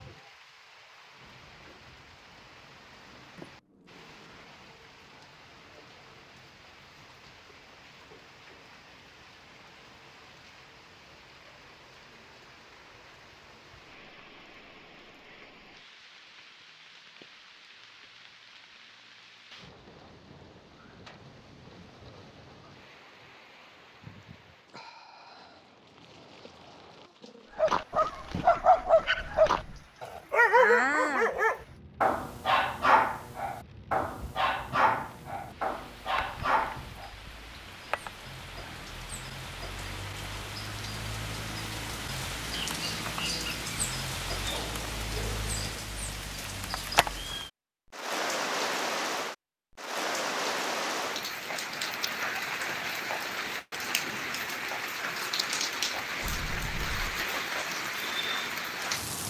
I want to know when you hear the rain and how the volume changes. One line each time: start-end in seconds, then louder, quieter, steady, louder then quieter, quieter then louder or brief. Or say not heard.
0.0-59.2 louder.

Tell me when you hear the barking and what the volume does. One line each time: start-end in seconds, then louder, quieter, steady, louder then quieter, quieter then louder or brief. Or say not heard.
27.6-37.1 quieter.